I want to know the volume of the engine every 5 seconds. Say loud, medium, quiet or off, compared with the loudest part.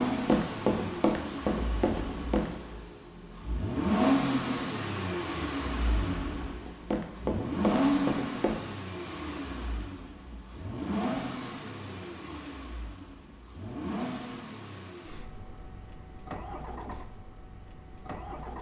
loud, loud, medium, quiet.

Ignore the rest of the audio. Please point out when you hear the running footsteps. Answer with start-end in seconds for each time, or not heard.
0.1-2.6, 6.6-8.6.